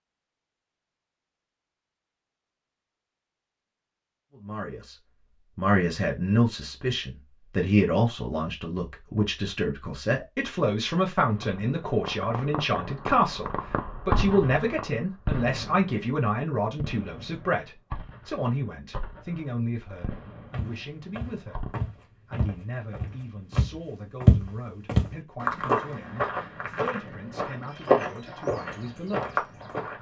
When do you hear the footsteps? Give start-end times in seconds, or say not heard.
20.5-29.9.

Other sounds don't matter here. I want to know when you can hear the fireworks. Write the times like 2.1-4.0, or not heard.
11.3-21.8.